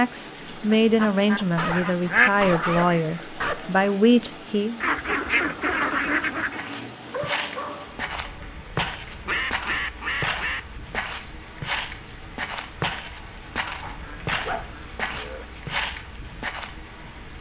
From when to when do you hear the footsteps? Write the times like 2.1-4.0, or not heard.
6.5-16.8.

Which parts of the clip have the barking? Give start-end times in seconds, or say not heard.
1.6-3.5, 7.0-8.0, 13.8-15.4.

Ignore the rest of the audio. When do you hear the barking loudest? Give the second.
3 s.